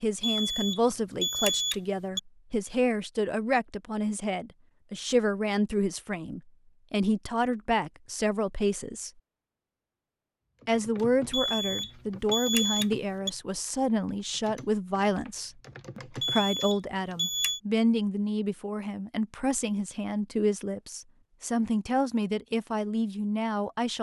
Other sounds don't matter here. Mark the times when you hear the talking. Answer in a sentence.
You can hear the talking from 0.0 to 9.1 s and from 10.7 to 23.9 s.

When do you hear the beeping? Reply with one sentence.
You can hear the beeping from 0.2 to 2.2 s, from 11.3 to 13.3 s and from 16.2 to 17.6 s.